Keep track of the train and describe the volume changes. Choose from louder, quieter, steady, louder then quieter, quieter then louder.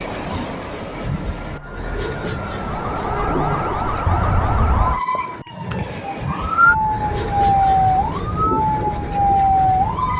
steady.